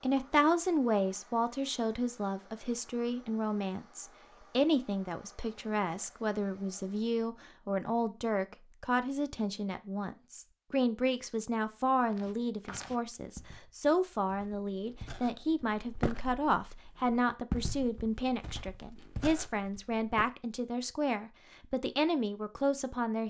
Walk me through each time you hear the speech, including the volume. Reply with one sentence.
You can hear the speech from 0.0 to 23.2 s, at a steady volume.